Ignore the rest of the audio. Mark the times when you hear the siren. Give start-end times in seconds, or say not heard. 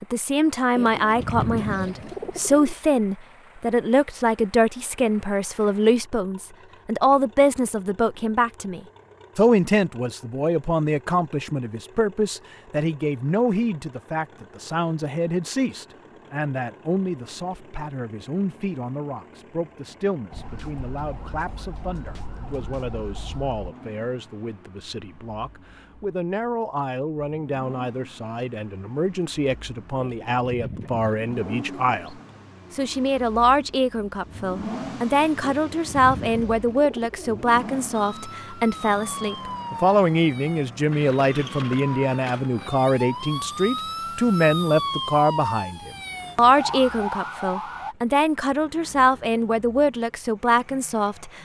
20.3-23.8, 37.9-48.0.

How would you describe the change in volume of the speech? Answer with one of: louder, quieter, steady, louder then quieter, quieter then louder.
quieter then louder.